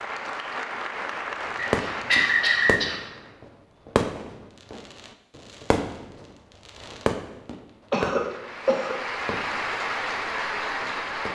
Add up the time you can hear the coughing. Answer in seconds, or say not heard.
2 s.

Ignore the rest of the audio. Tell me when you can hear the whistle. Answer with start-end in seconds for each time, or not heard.
1.6-2.8.